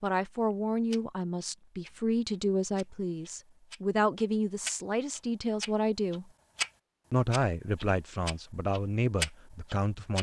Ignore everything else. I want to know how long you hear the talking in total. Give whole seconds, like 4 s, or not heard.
9 s.